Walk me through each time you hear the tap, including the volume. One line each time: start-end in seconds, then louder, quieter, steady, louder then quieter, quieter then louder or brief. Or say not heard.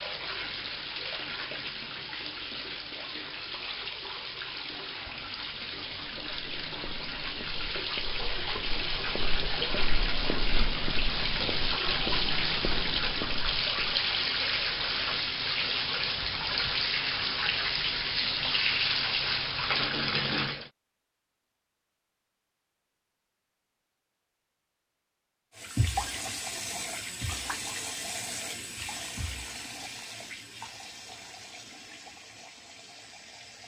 0.0-20.7 louder
25.5-33.6 quieter.